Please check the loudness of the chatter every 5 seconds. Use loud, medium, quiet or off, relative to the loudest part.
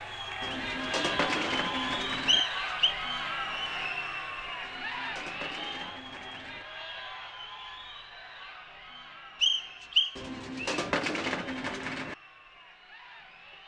loud, medium, quiet.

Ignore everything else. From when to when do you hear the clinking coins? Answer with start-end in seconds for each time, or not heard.
0.4-2.5, 4.6-6.7, 10.2-12.2.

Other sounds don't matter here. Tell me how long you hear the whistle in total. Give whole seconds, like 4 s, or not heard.
2 s.